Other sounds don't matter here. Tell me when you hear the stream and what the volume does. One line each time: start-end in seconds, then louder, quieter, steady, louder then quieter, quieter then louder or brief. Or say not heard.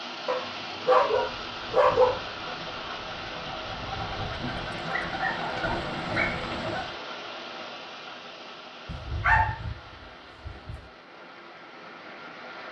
0.0-12.6 quieter.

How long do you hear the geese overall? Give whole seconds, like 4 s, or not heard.
6 s.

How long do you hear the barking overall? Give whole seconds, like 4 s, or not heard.
6 s.